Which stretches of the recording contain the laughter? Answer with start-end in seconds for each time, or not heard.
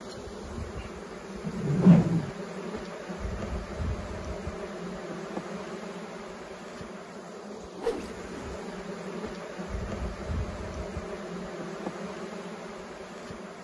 not heard.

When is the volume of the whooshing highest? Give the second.
2 s.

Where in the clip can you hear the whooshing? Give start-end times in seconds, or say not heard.
1.4-2.3, 7.8-8.5.